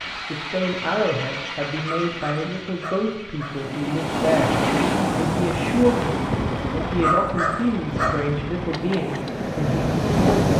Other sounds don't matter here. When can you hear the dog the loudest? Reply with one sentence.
The loudest moment of the dog is at 7 seconds.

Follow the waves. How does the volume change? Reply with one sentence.
The loudness of the waves goes down, then up.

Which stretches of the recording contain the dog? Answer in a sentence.
The dog can be heard from 1.9 to 3.5 s and from 7.0 to 8.3 s.